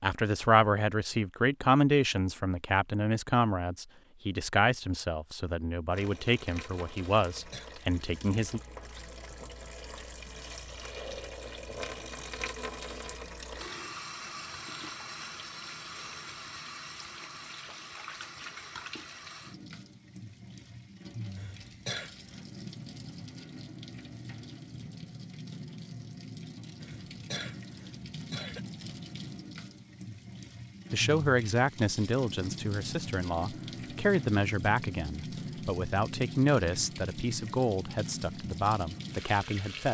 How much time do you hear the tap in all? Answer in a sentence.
You can hear the tap for 34 seconds altogether.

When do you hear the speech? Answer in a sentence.
You can hear the speech from 0.0 to 8.6 s and from 30.9 to 39.8 s.